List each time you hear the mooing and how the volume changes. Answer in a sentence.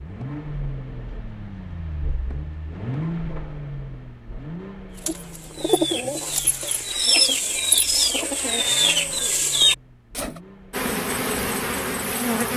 You can't hear the mooing here.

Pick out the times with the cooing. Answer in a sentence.
The cooing can be heard from 5.0 to 10.4 s.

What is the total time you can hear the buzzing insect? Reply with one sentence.
You can hear the buzzing insect for 2 seconds altogether.